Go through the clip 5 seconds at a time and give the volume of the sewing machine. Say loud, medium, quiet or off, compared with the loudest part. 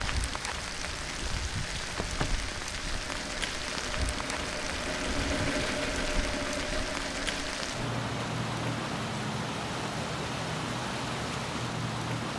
medium, loud, off.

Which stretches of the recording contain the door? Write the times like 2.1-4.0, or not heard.
1.9-2.5.